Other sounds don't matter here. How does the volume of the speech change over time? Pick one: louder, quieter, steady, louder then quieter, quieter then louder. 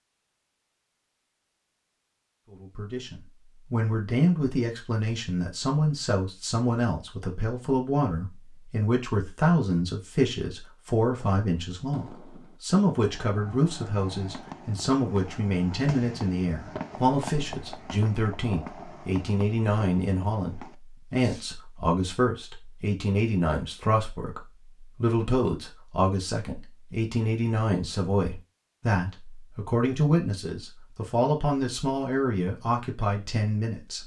steady.